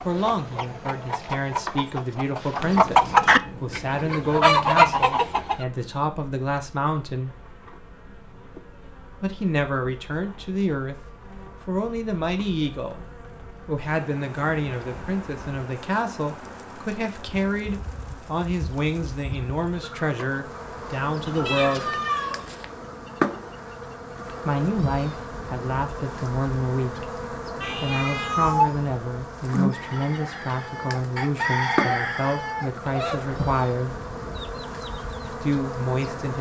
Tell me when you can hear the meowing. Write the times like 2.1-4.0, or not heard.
2.5-5.0, 21.4-22.6, 27.6-28.9.